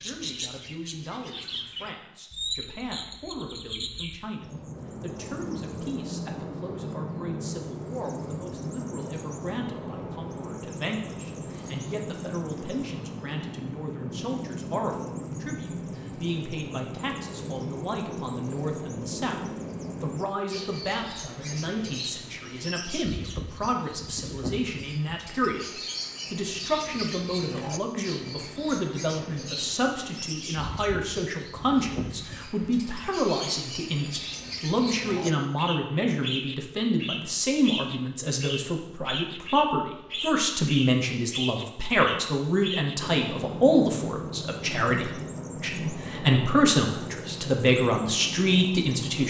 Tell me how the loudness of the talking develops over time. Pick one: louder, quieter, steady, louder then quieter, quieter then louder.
louder.